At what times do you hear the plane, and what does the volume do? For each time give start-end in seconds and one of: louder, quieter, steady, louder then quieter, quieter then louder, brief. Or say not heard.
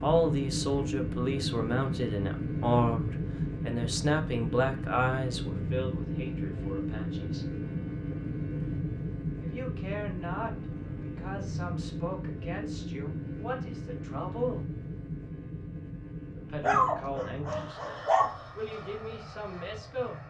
0.0-20.2 quieter.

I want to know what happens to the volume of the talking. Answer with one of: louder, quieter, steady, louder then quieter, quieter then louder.
quieter.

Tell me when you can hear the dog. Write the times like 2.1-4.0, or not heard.
16.6-18.4.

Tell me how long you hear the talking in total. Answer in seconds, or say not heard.
17 s.